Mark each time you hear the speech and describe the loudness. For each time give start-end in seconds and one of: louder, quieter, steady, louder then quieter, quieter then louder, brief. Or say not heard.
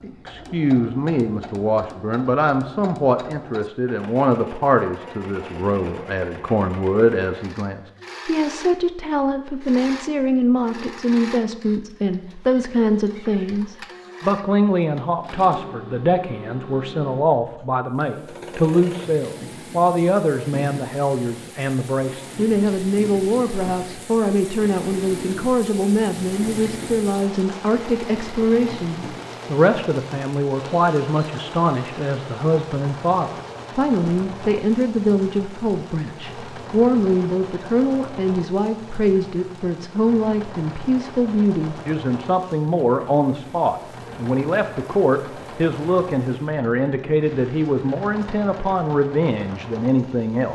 0.0-50.5 steady.